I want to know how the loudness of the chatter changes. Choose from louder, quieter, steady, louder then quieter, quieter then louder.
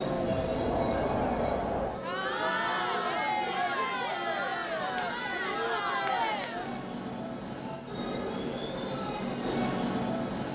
steady.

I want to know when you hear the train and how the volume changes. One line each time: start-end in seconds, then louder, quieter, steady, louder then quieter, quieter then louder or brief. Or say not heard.
0.0-10.5 quieter then louder.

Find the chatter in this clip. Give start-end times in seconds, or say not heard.
0.2-6.8.